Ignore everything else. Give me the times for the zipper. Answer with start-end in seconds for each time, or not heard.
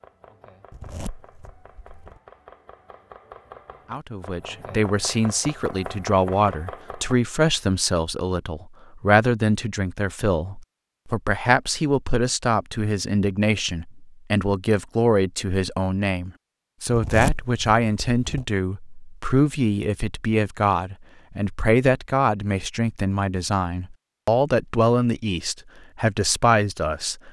0.7-2.2, 16.9-18.4.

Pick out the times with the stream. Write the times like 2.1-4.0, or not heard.
not heard.